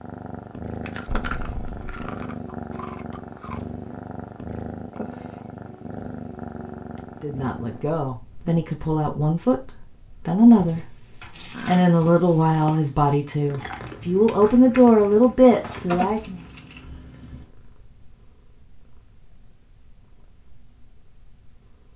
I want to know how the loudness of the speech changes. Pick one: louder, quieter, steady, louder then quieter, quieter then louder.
louder.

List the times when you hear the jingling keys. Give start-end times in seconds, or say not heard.
1.1-1.9, 10.6-11.8, 15.6-17.4.